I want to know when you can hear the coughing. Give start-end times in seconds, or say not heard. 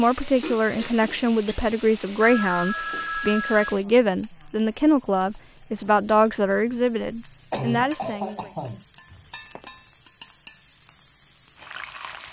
0.4-1.6, 7.5-8.8.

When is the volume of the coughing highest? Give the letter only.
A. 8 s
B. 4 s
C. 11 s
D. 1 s
A.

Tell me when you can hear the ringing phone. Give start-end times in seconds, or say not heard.
2.2-3.6, 9.1-9.7.